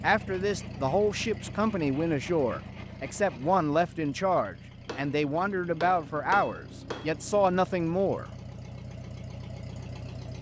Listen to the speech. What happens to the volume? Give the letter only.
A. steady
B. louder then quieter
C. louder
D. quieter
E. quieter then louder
A.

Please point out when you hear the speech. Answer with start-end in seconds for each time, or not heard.
0.0-8.2.